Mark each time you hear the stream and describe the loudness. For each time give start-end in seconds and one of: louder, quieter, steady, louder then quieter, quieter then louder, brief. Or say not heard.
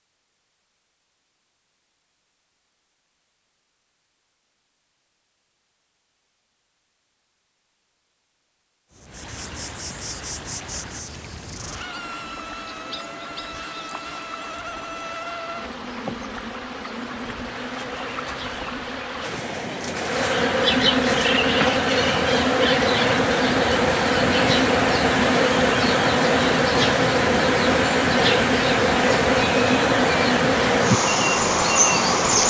9.1-32.4 louder.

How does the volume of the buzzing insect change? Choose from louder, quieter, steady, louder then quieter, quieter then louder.
louder.